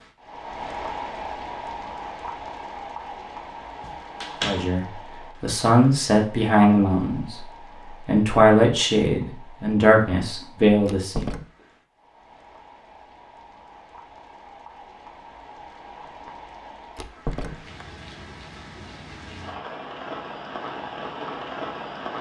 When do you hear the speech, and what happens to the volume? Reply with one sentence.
The speech can be heard from 4.4 to 11.2 s, at a steady volume.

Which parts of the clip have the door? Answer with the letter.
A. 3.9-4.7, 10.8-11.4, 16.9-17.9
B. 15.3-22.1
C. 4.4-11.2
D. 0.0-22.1
A.